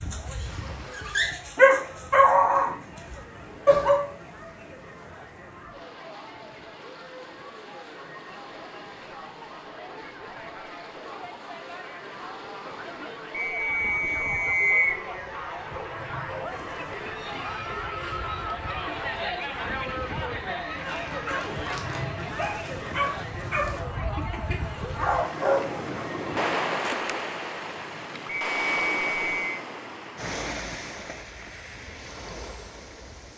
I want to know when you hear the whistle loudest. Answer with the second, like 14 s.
15 s.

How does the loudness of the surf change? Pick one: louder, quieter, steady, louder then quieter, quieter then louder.
louder.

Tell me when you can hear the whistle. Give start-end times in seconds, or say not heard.
13.3-15.0, 28.3-29.6.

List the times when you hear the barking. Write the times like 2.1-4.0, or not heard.
0.0-4.0, 20.8-25.6.